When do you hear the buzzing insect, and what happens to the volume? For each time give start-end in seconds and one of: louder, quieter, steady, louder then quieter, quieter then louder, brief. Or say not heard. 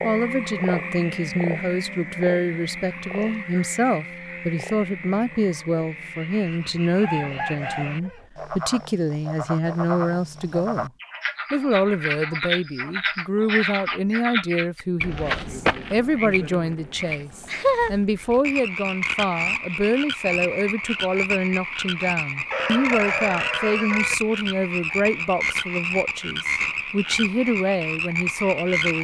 not heard.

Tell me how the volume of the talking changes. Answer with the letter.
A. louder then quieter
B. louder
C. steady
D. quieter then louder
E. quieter
C.